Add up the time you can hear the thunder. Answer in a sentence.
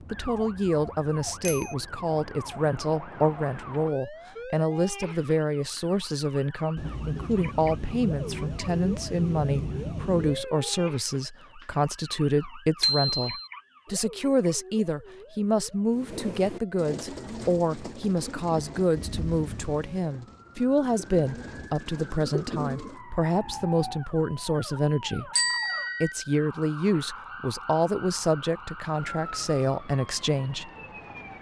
The thunder can be heard for 5 seconds in total.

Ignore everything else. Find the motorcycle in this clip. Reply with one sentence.
You can't hear the motorcycle here.